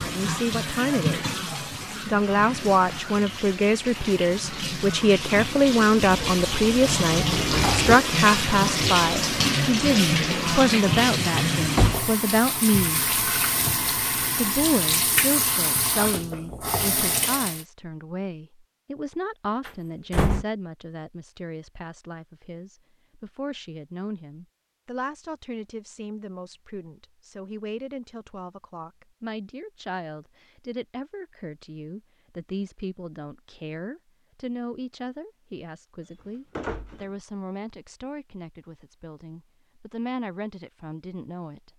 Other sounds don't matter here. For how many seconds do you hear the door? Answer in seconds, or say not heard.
3 s.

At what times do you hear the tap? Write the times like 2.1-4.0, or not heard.
0.0-17.6.